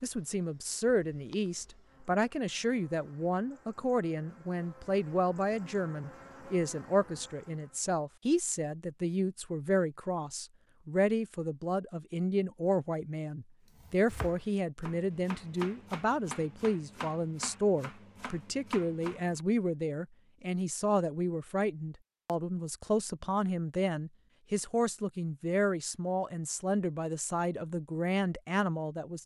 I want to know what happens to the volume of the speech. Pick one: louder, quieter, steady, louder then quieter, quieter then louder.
steady.